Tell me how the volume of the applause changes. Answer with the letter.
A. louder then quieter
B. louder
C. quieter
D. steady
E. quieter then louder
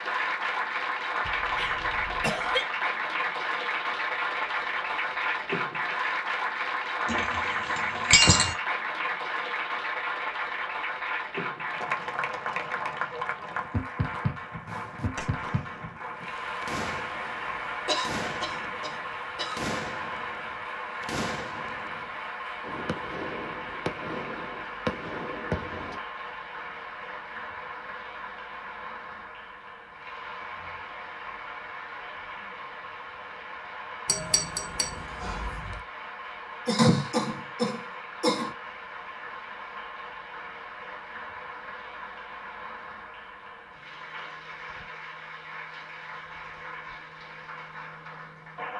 C.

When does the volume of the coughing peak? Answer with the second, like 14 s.
37 s.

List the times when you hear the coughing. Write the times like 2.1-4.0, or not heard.
1.2-2.6, 17.9-19.8, 36.6-38.5.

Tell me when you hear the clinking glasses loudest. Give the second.
8 s.